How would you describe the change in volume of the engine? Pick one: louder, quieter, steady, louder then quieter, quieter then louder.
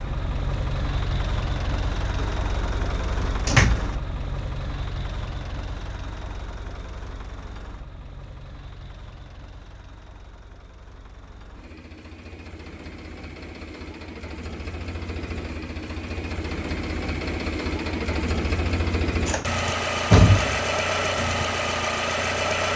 quieter then louder.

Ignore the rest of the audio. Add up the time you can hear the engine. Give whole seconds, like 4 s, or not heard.
23 s.